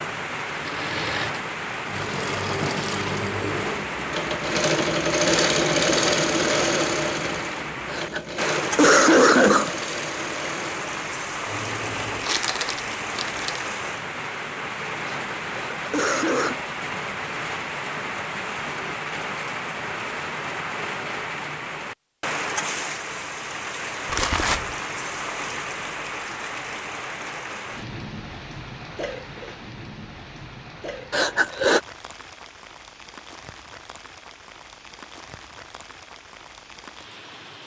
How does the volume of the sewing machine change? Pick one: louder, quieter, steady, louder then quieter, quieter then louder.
louder then quieter.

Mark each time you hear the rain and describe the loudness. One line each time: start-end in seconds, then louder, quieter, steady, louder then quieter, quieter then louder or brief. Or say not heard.
0.0-37.6 quieter.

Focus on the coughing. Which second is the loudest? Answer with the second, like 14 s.
9 s.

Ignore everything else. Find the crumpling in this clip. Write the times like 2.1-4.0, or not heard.
12.2-13.7, 24.1-24.8.